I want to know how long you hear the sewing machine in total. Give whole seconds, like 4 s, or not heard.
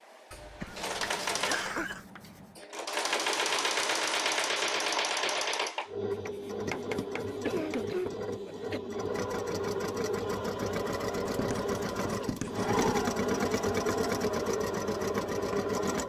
16 s.